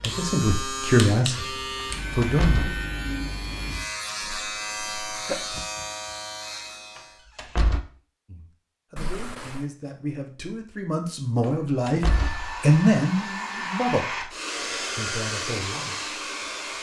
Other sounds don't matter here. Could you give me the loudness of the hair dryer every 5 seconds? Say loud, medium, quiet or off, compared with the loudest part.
off, off, loud, loud.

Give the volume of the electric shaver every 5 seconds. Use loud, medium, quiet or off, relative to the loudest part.
loud, loud, off, off.